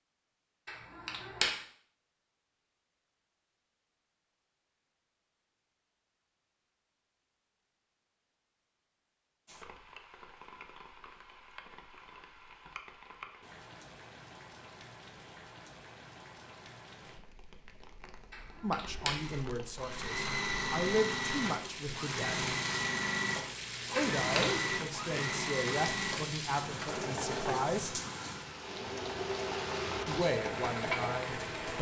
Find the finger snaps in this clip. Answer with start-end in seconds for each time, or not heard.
0.7-1.6, 18.3-19.1, 23.9-24.6.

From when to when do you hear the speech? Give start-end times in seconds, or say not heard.
18.6-22.4, 23.9-28.0, 30.1-31.7.